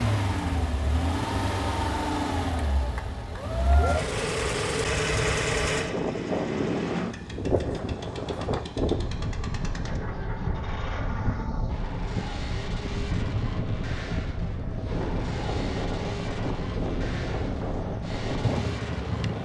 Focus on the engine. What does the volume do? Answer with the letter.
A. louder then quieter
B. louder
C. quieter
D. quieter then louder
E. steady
C.